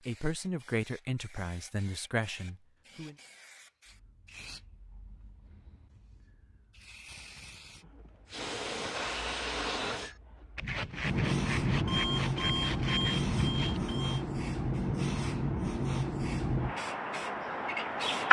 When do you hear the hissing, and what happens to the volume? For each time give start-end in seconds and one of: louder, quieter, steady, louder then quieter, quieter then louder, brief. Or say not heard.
0.0-18.2 louder.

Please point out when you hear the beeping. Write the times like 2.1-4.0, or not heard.
11.8-14.2.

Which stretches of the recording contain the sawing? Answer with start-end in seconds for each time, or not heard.
9.1-13.8.